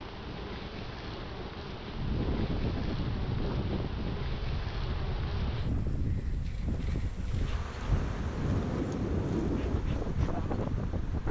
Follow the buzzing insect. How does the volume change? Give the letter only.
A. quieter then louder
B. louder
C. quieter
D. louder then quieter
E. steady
E.